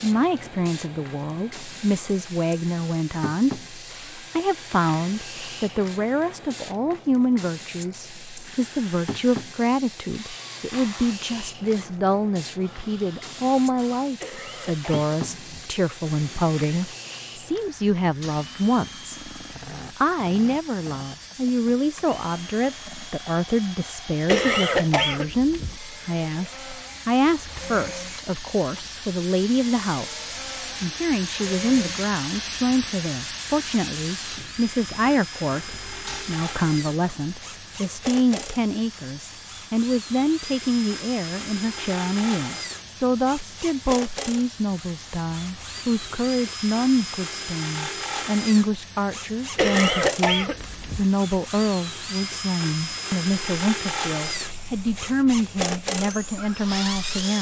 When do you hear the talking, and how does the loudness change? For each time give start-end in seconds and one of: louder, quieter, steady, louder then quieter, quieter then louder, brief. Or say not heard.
0.0-19.1 steady
19.9-57.3 steady.